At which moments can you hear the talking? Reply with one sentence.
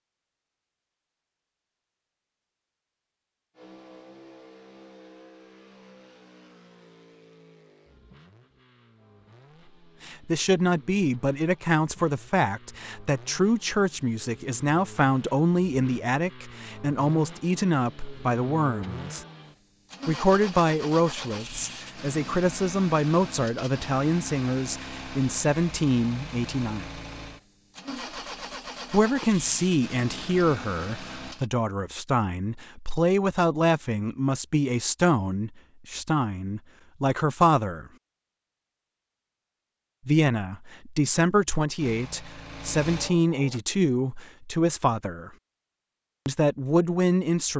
The talking can be heard from 10.0 to 19.2 s, from 20.1 to 26.9 s, from 28.9 to 37.9 s, from 40.0 to 45.3 s and from 46.2 to 47.5 s.